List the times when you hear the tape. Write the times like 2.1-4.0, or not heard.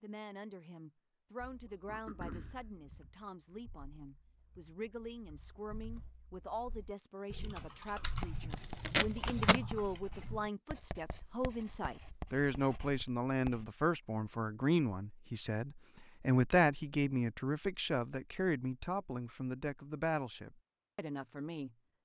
8.5-9.6.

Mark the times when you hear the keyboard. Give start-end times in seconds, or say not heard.
1.4-10.5.